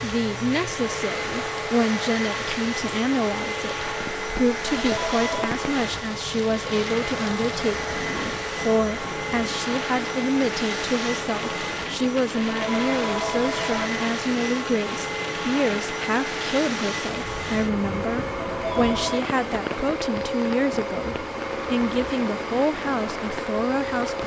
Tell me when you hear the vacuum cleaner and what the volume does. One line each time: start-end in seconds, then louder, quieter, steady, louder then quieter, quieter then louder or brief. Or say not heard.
0.0-24.2 steady.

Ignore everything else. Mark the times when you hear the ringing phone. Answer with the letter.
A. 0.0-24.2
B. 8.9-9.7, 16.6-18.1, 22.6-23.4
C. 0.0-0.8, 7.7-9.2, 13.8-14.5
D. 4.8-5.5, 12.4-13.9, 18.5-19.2
D.